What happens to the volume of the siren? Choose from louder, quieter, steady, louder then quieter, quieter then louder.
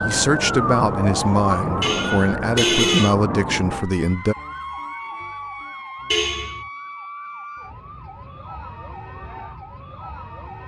quieter.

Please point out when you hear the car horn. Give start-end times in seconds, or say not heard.
1.8-3.1, 6.1-6.7.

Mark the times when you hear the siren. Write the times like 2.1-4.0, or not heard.
0.0-10.6.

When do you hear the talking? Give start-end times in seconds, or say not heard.
0.0-4.3.